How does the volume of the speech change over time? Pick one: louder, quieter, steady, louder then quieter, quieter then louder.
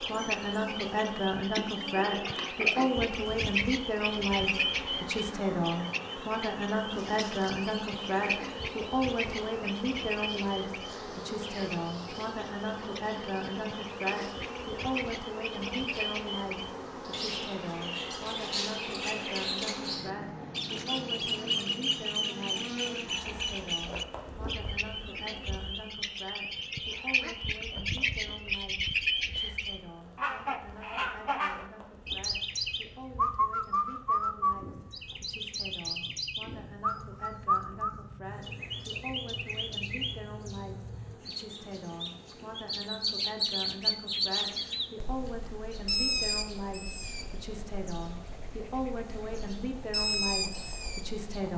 quieter then louder.